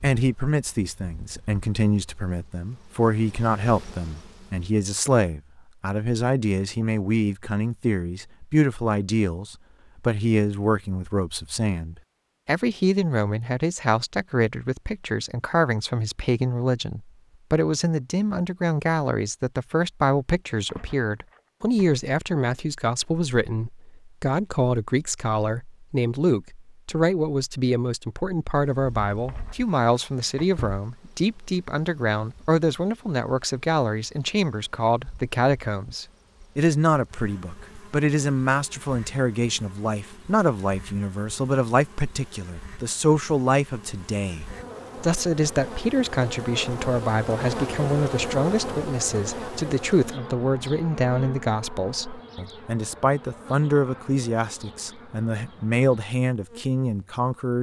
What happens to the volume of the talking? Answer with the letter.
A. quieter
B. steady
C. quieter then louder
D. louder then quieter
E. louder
B.